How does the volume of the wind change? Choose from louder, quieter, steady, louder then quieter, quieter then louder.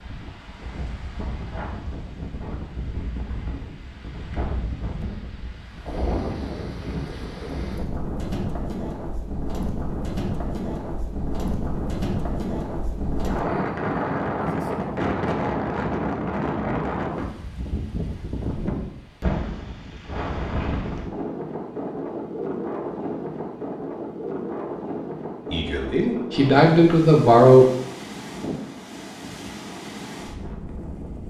louder then quieter.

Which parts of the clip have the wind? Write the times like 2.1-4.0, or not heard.
0.0-31.2.